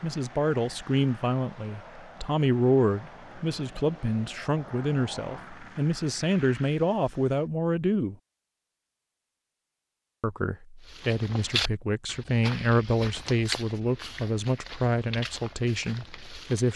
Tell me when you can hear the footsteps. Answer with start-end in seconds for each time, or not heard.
10.8-16.7.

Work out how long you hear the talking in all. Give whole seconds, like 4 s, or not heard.
15 s.